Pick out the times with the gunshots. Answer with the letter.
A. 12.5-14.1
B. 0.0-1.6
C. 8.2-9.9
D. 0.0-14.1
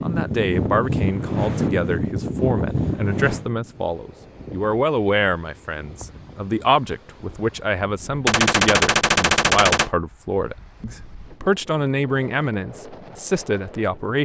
C.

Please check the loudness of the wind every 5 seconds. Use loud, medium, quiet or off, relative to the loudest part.
loud, quiet, quiet.